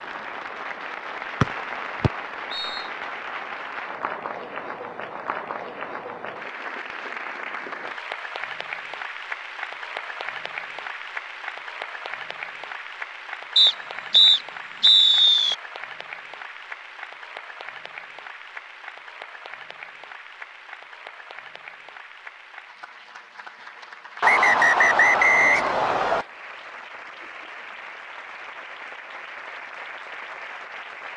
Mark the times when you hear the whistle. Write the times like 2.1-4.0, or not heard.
1.4-2.9, 13.6-15.6, 24.2-26.2.